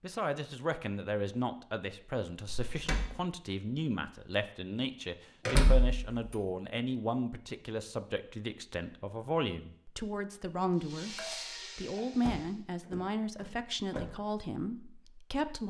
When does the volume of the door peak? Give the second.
6 s.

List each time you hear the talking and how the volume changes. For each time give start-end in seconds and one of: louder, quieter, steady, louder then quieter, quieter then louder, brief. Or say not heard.
0.0-15.6 steady.